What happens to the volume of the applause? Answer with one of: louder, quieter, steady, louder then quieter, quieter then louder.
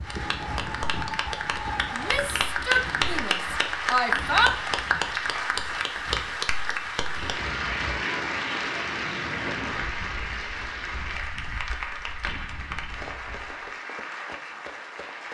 quieter.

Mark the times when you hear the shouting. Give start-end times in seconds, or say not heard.
1.9-4.5.